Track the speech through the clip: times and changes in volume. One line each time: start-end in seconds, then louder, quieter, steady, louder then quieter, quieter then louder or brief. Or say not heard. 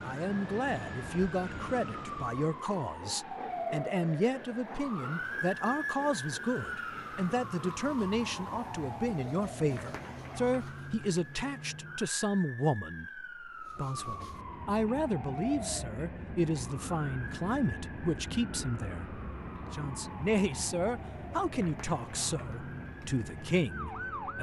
0.0-24.3 steady.